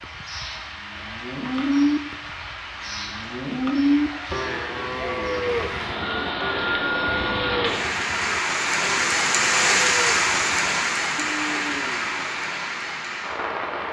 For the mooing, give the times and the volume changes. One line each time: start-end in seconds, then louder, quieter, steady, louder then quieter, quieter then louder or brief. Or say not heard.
0.0-2.3 brief
3.0-12.3 quieter.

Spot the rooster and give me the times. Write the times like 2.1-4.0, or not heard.
6.0-7.5.